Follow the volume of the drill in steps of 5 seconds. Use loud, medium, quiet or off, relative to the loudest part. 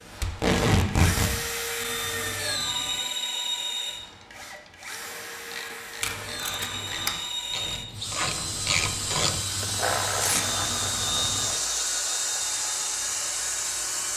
loud, medium, loud.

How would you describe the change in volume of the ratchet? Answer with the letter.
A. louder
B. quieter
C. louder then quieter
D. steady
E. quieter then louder
C.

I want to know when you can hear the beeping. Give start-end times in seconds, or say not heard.
1.8-3.0, 6.2-7.2, 10.3-11.6.